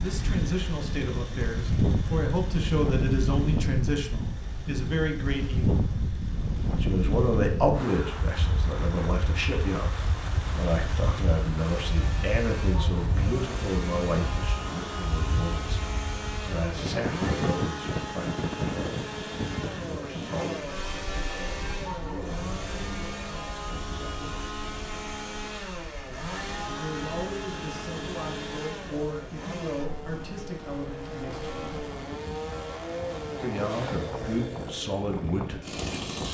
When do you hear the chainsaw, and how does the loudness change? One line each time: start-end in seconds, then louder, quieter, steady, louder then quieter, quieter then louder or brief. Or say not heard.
0.0-36.2 louder.